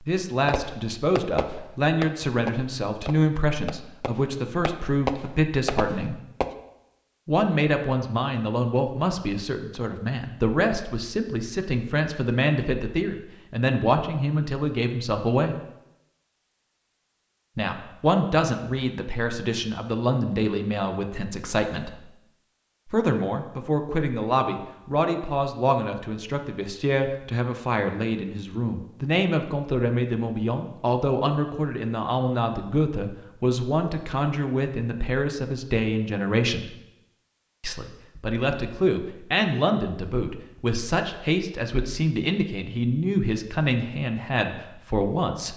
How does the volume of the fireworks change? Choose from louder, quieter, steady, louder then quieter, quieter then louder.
quieter then louder.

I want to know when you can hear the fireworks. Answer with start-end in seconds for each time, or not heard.
0.5-6.5.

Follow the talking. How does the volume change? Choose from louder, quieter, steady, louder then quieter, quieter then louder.
steady.